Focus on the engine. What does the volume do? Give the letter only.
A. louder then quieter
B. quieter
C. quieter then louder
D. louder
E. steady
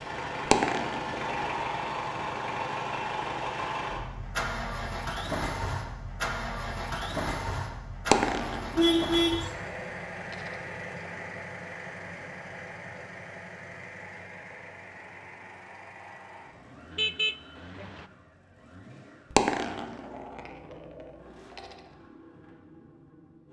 B.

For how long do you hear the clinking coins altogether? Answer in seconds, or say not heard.
6 s.